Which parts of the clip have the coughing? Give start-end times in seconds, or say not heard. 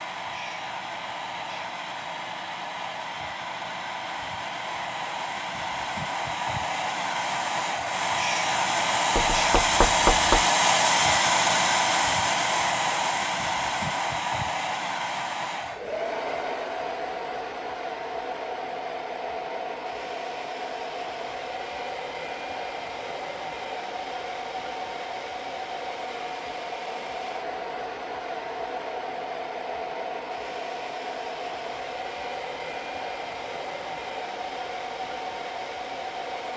not heard.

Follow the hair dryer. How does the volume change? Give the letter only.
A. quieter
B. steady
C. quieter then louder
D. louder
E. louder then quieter
E.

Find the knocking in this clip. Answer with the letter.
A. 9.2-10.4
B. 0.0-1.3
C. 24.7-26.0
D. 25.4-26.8
A.